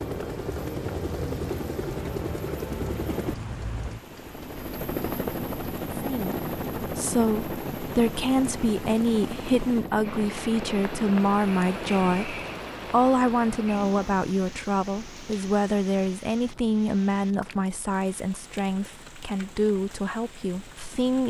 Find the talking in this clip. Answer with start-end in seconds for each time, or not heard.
6.0-21.2.